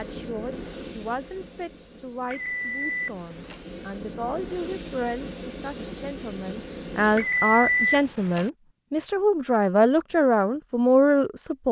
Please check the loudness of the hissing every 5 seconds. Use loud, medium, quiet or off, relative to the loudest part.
loud, loud, off.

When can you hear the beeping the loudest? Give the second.
8 s.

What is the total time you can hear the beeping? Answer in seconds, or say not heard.
3 s.